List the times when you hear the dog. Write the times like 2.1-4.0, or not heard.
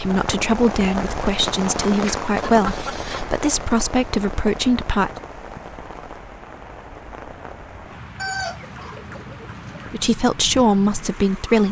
not heard.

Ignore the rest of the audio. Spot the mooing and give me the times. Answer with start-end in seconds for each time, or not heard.
not heard.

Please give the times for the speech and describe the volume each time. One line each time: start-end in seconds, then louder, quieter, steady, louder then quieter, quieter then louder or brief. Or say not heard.
0.0-5.1 steady
9.9-11.6 brief.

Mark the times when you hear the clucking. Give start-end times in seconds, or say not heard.
1.6-3.5, 8.2-9.9.